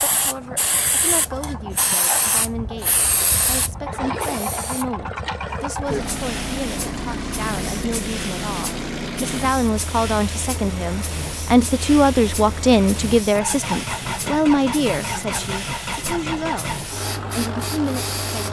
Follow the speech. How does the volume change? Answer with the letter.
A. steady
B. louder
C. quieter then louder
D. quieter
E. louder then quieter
E.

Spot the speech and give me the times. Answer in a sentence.
You can hear the speech from 0.0 to 18.4 s.